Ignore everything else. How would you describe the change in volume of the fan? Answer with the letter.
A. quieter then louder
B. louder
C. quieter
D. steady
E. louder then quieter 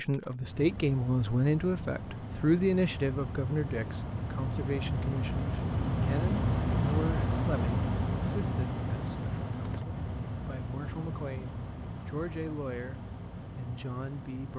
E.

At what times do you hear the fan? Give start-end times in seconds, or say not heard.
0.0-14.5.